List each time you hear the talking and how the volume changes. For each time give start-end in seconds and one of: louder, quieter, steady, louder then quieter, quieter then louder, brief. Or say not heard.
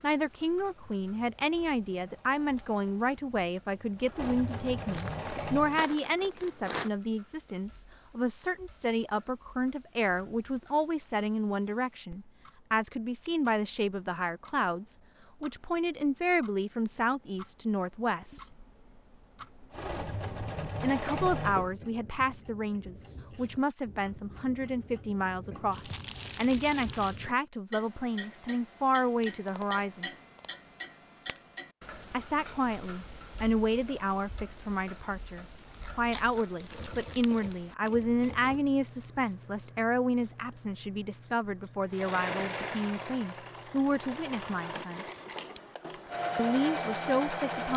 0.0-18.4 steady
20.8-30.1 steady
32.1-45.0 steady
46.4-47.7 brief.